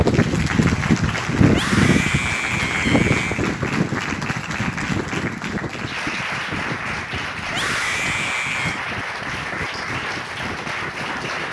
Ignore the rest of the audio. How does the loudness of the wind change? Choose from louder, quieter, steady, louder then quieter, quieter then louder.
quieter.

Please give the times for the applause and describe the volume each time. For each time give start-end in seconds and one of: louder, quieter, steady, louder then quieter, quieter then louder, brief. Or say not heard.
0.0-11.4 steady.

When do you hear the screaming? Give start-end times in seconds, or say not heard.
1.4-3.5, 7.5-8.8.